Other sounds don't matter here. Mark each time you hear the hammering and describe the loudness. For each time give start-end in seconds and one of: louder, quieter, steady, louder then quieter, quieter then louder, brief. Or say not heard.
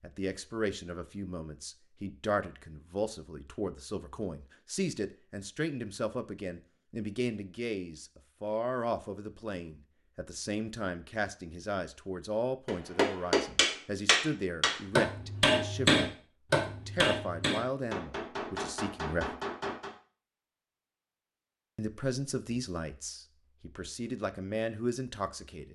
12.7-19.9 quieter.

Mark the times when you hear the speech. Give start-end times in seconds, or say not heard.
0.0-19.4, 21.8-25.7.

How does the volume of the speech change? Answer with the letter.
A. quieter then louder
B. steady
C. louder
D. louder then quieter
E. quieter
B.